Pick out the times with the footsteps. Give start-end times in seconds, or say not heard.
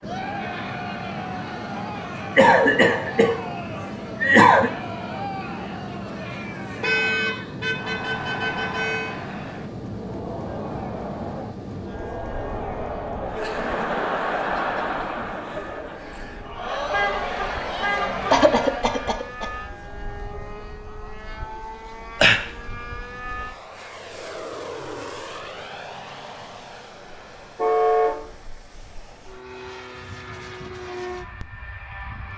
not heard.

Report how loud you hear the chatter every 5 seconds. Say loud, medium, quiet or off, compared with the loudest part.
medium, medium, loud, loud, off, off, off.